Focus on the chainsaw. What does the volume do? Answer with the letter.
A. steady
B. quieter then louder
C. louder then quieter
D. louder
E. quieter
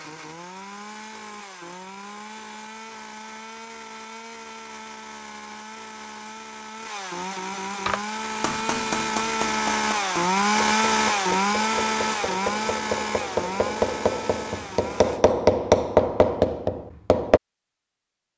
C.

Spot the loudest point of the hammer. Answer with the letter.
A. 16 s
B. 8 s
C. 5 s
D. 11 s
A.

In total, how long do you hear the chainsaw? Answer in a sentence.
The chainsaw can be heard for 15 seconds in total.